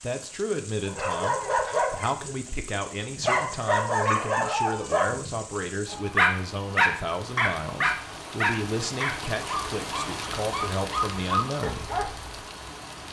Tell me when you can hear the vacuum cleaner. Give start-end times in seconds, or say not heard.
not heard.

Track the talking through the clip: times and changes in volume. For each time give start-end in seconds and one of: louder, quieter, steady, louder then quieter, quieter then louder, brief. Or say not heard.
0.0-11.9 steady.